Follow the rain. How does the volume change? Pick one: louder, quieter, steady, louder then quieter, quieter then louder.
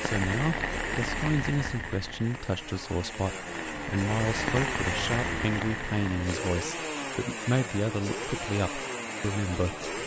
quieter then louder.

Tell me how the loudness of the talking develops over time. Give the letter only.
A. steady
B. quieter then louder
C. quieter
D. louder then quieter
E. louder
A.